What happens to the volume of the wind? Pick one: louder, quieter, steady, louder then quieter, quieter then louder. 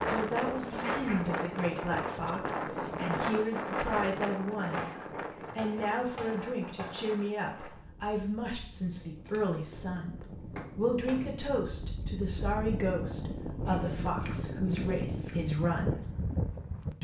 quieter then louder.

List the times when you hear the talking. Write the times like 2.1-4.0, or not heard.
0.1-4.9, 5.5-10.2, 10.8-16.0.